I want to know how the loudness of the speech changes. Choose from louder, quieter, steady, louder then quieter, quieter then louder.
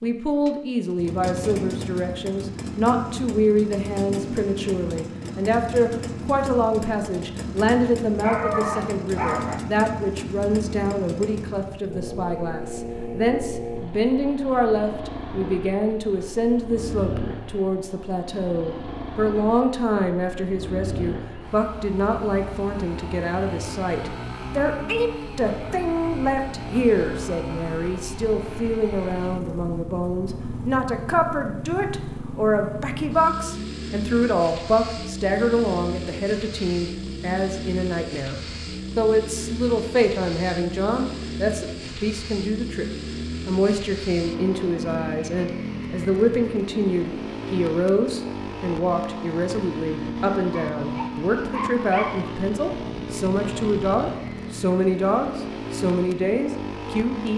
steady.